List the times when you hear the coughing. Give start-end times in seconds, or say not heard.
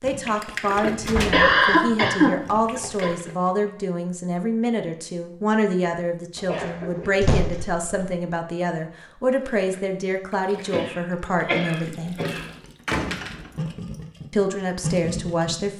1.0-3.1, 6.5-7.2, 10.7-12.4.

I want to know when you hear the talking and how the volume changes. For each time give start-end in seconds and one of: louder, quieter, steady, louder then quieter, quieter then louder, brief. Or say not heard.
0.0-12.2 steady
14.3-15.7 brief.